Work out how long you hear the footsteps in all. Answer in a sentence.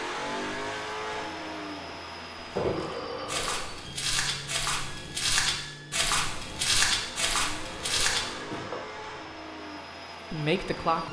You can hear the footsteps for 7 seconds altogether.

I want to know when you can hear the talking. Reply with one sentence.
You can hear the talking from 10.3 to 11.0 s.